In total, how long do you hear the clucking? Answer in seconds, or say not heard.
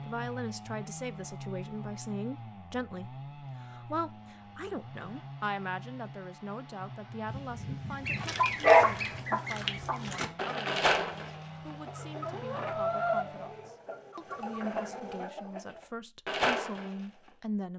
9 s.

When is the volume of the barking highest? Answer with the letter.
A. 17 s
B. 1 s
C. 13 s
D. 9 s
D.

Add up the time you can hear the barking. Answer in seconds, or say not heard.
2 s.